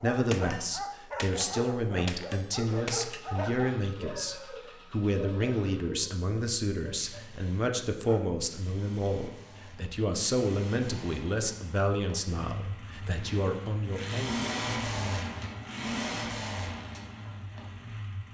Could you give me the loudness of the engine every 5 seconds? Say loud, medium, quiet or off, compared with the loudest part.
quiet, quiet, loud, loud.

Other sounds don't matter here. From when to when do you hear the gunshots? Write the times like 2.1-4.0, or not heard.
0.3-3.2.